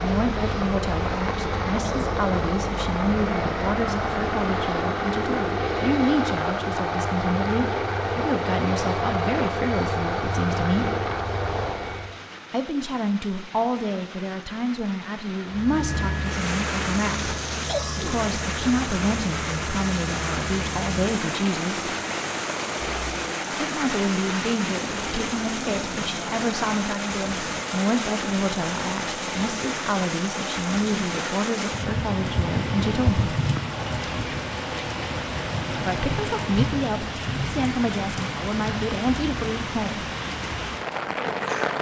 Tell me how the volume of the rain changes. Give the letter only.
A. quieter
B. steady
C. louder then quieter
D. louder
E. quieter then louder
D.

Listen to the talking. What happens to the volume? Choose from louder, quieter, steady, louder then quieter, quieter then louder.
steady.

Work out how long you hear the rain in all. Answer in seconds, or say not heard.
42 s.